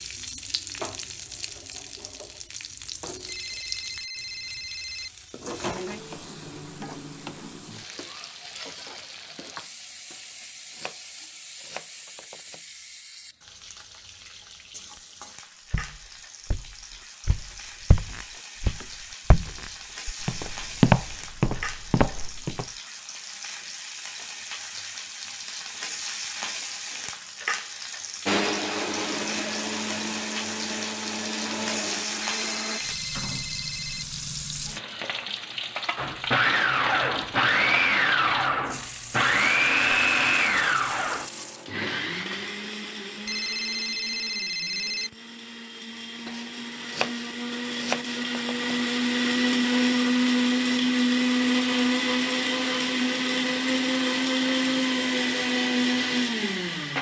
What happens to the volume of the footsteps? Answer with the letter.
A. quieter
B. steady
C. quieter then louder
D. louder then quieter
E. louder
D.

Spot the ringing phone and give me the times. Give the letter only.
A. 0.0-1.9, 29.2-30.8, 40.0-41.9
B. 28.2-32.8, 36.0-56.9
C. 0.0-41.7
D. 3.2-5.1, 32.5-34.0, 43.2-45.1
D.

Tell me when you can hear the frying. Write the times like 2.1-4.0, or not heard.
0.0-41.7.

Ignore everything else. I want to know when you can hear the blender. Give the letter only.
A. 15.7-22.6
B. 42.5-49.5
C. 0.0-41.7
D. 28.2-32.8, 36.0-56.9
D.